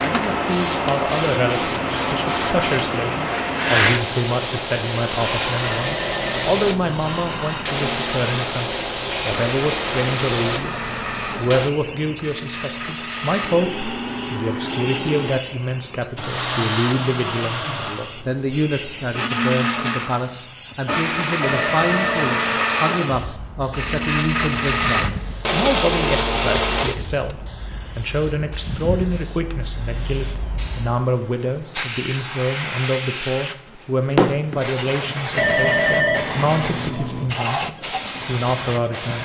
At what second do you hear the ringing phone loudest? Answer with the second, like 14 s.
36 s.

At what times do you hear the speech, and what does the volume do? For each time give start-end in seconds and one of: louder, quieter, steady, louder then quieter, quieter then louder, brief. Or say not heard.
0.0-39.2 steady.